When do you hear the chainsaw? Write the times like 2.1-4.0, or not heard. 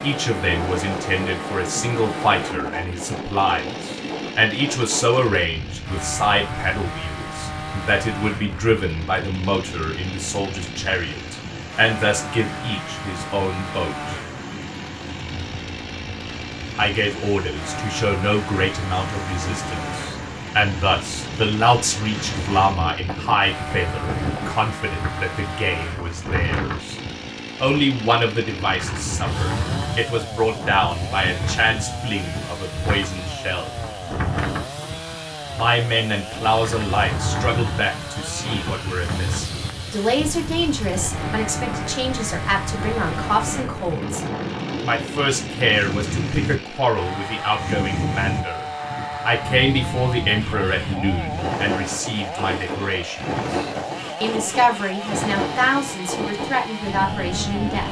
0.0-57.8.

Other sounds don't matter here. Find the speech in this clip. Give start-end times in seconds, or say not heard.
0.0-14.2, 16.8-26.9, 27.6-33.8, 35.5-44.2, 44.9-57.8.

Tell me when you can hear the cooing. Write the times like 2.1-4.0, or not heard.
not heard.